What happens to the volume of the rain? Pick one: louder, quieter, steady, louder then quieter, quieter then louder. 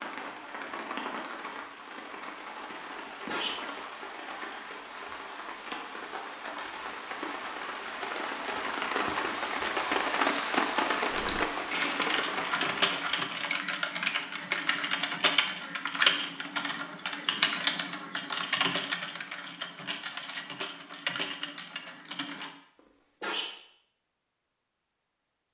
louder.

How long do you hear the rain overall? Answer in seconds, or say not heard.
13 s.